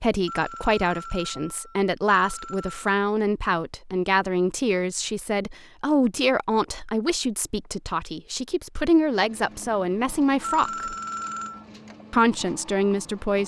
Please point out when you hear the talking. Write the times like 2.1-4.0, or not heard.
0.0-10.9, 12.1-13.4.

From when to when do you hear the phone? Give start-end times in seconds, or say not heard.
0.2-3.0, 10.4-11.7.